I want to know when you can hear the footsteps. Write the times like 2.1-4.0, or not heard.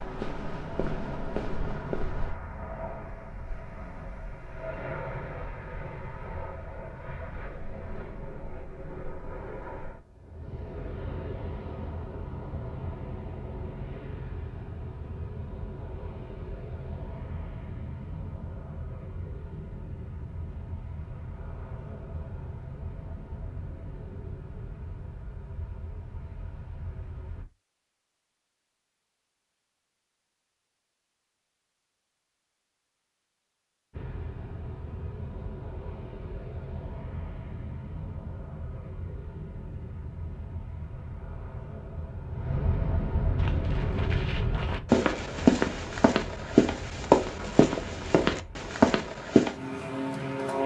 0.0-2.4, 43.4-49.5.